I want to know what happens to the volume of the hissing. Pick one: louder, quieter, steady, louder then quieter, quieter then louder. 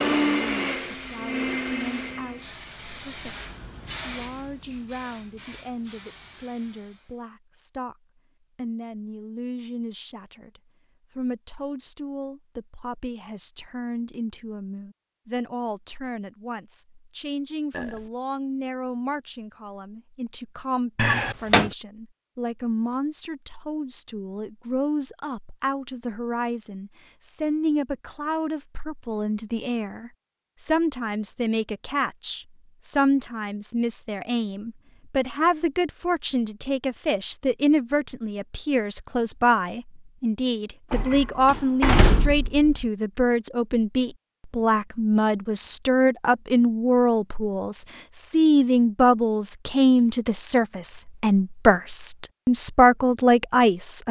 louder then quieter.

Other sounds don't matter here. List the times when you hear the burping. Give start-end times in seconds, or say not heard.
17.7-18.1.